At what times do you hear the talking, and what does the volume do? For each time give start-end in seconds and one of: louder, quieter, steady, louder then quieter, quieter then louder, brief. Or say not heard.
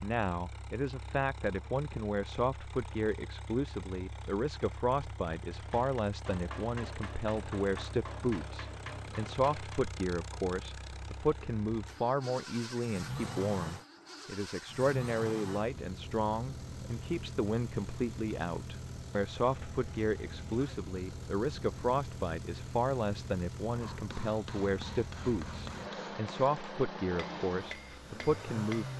0.0-28.9 steady.